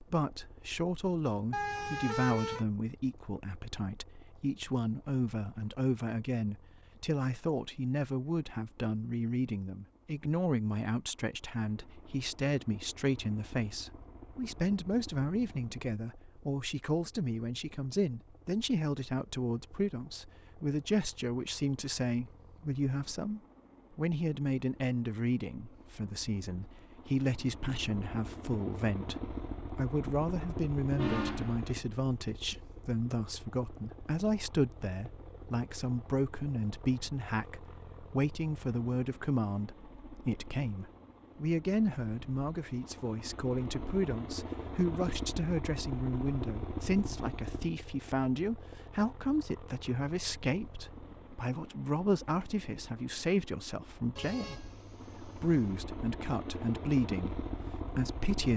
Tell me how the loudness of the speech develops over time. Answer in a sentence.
The loudness of the speech stays about the same.